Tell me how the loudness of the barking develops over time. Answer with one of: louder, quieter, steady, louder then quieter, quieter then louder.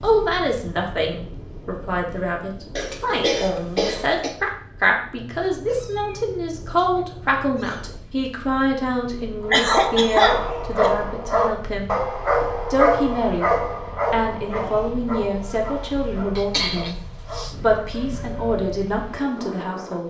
quieter.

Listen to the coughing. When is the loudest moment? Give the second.
10 s.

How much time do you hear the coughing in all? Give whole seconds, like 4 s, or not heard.
4 s.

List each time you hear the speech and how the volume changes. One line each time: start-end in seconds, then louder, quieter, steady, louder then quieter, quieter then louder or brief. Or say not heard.
0.0-12.0 steady
12.7-13.5 brief
14.1-17.0 brief
17.6-20.0 brief.